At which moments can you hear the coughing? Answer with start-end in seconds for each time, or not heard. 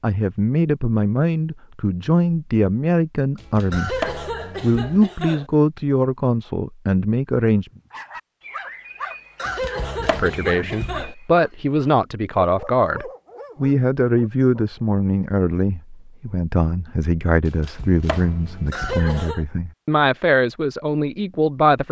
3.7-5.5, 9.3-11.2, 18.7-19.4.